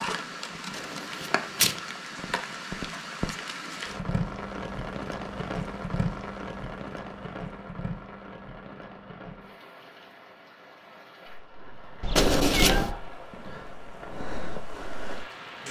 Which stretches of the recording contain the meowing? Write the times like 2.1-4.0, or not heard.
12.0-12.9.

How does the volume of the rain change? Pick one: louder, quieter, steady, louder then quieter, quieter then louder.
quieter then louder.